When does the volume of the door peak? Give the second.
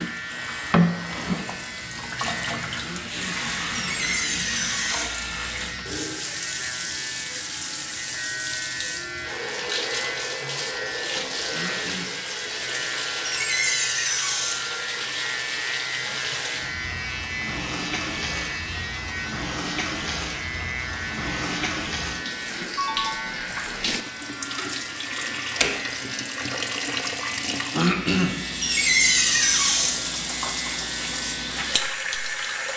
29 s.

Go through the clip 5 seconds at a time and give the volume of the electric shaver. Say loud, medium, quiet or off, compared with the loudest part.
loud, loud, loud, loud, loud, loud, medium.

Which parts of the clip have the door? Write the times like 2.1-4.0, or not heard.
3.7-5.1, 13.2-14.6, 28.6-30.0.